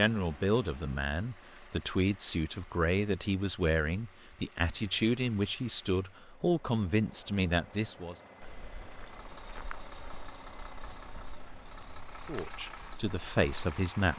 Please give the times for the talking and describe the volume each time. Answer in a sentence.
The talking can be heard from 0.0 to 8.2 s, at a steady volume; and briefly from 12.2 to 14.1 s.